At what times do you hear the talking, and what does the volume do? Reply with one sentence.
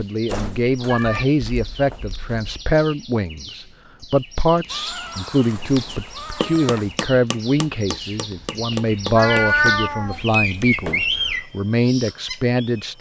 The talking can be heard from 0.0 to 12.9 s, at a steady volume.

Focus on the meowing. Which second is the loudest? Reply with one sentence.
The loudest moment of the meowing is at 10 seconds.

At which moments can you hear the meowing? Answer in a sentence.
The meowing can be heard from 0.8 to 2.6 s, from 4.7 to 7.0 s and from 9.2 to 11.4 s.